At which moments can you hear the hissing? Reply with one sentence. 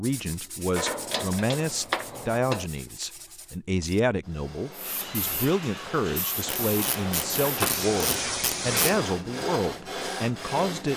You can hear the hissing from 4.7 to 9.0 s.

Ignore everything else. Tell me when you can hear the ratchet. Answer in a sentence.
The ratchet can be heard from 0.8 to 2.7 s and from 6.5 to 9.1 s.